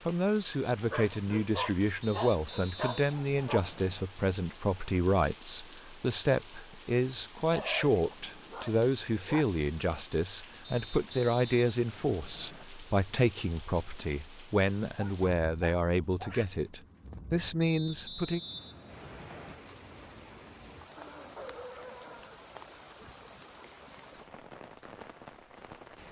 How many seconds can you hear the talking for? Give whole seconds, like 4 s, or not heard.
18 s.